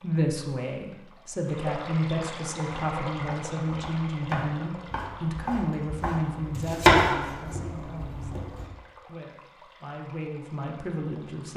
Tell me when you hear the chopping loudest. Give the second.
7 s.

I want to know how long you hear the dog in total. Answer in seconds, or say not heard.
not heard.